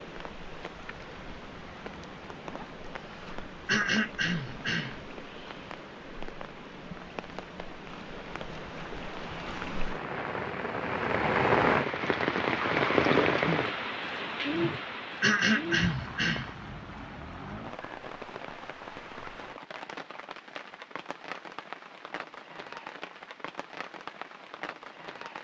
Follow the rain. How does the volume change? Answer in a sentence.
The volume of the rain goes up, then down.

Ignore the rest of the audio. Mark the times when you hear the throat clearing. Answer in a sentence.
You can hear the throat clearing from 3.6 to 5.0 s and from 15.2 to 16.5 s.